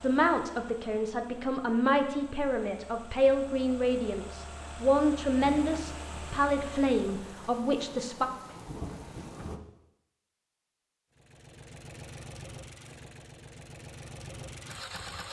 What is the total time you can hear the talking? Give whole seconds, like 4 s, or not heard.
8 s.